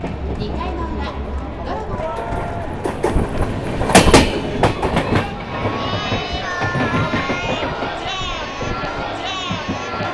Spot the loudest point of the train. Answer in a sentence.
The loudest moment of the train is at 4 seconds.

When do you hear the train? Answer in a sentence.
You can hear the train from 0.0 to 10.0 s.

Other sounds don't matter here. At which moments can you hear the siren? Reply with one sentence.
You can't hear the siren here.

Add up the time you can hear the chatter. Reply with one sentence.
The chatter can be heard for 10 seconds in total.